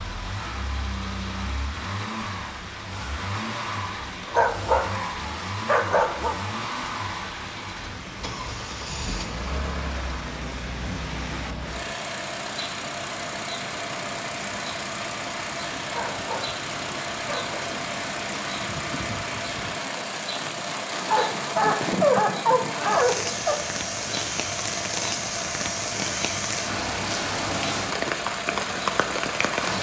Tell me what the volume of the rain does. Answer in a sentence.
The loudness of the rain goes up.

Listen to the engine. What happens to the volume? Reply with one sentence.
The volume of the engine stays about the same.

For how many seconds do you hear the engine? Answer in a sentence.
The engine can be heard for 30 seconds in total.